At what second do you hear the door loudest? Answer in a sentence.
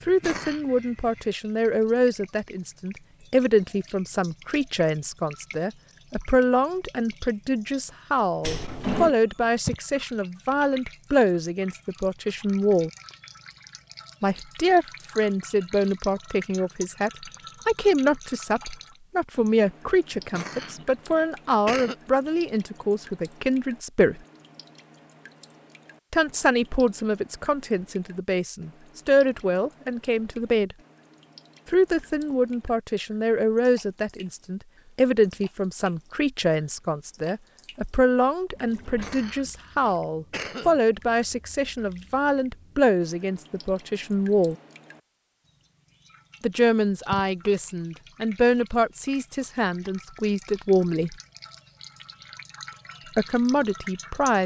The volume of the door peaks at 9 seconds.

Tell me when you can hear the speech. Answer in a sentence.
The speech can be heard from 0.1 to 12.9 s, from 14.2 to 24.2 s, from 26.1 to 30.8 s, from 31.7 to 44.5 s, from 46.4 to 51.1 s and from 53.1 to 54.4 s.